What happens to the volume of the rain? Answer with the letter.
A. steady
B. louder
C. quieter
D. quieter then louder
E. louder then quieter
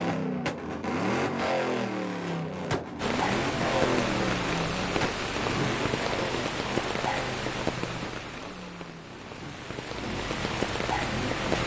D.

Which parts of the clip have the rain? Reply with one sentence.
The rain can be heard from 3.0 to 11.6 s.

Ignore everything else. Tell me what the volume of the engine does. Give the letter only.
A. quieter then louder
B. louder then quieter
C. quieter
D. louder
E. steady
C.